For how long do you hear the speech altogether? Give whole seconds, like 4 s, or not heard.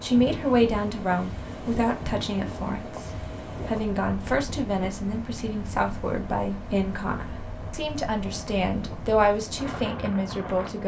11 s.